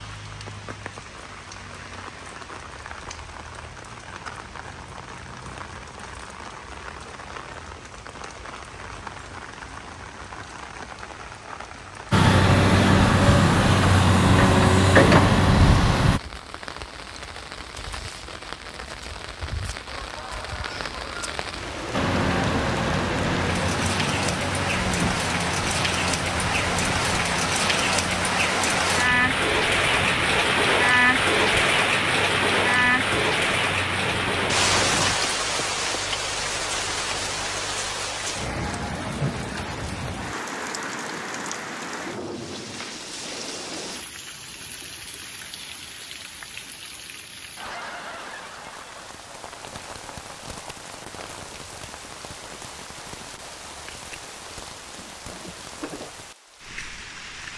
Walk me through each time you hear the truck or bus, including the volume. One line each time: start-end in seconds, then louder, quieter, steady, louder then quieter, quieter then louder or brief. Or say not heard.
12.1-16.2 steady
21.9-35.2 quieter.